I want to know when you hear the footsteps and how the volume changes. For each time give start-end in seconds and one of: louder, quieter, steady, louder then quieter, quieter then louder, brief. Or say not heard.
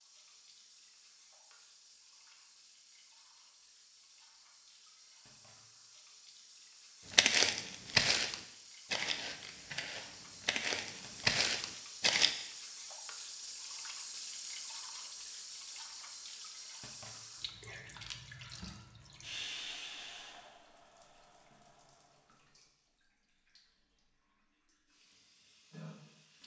7.1-12.3 quieter then louder.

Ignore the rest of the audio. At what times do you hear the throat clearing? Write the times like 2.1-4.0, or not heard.
not heard.